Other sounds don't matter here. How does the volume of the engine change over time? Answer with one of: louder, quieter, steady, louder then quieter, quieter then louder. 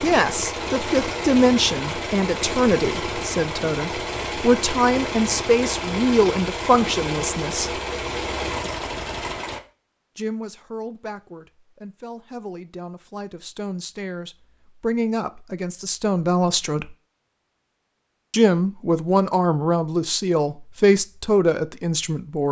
steady.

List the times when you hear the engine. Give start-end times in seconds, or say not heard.
0.0-9.6.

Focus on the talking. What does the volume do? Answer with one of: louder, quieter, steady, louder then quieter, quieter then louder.
quieter then louder.